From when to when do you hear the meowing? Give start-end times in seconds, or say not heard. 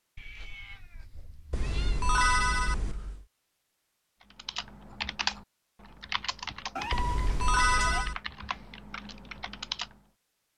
0.1-2.0, 6.8-8.1.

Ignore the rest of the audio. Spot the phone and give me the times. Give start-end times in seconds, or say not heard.
1.5-3.2, 6.9-8.2.